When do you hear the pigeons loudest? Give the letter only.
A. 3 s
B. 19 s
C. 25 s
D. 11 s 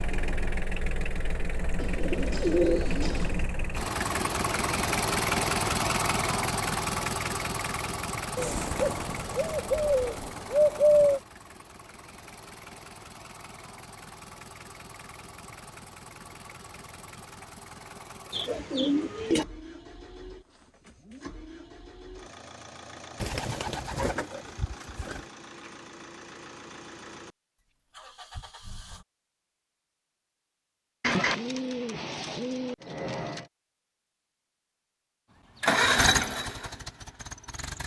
D.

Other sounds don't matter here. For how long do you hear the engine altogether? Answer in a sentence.
You can hear the engine for 31 seconds altogether.